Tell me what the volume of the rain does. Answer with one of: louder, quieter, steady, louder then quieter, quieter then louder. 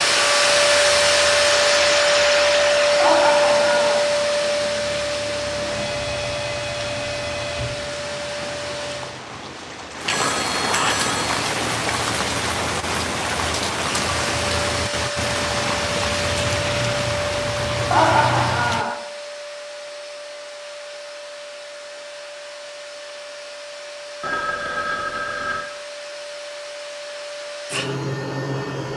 louder.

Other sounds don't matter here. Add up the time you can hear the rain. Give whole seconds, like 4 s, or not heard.
19 s.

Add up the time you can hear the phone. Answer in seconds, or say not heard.
5 s.